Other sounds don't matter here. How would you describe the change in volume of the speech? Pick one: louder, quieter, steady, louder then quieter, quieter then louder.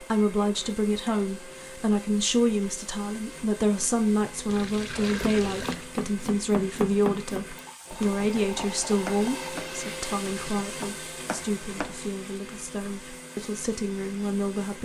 quieter.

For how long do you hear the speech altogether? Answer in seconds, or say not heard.
15 s.